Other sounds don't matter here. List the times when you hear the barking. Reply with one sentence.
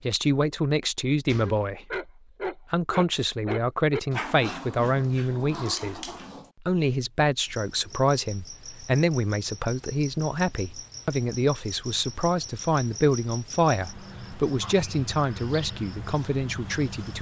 The barking can be heard from 1.4 to 6.5 s.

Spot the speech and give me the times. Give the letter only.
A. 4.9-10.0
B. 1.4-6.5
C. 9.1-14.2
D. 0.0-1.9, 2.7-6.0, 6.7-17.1
D.